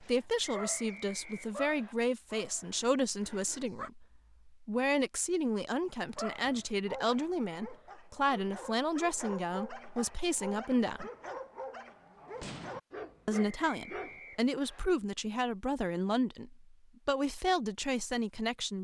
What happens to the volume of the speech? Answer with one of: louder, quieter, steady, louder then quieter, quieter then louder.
steady.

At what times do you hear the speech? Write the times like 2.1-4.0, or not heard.
0.0-11.1, 13.2-18.7.